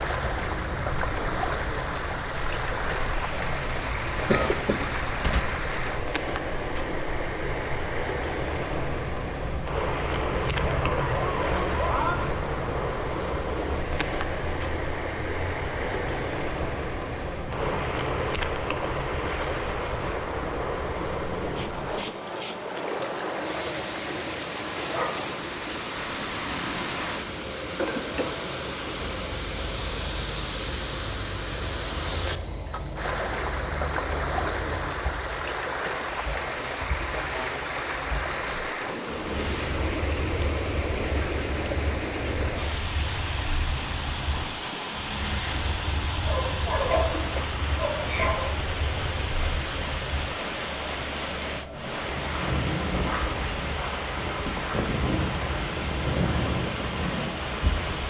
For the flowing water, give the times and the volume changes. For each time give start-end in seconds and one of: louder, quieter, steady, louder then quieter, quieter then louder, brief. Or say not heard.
0.0-58.0 steady.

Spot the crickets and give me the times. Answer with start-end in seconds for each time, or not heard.
0.0-58.0.